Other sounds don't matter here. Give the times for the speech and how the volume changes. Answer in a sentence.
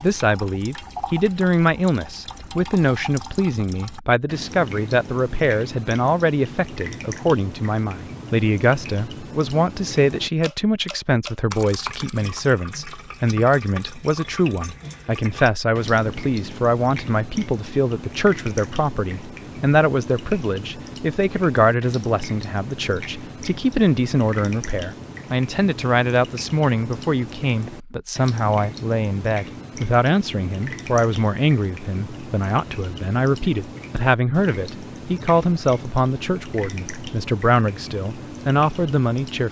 The speech can be heard from 0.0 to 39.4 s, at a steady volume.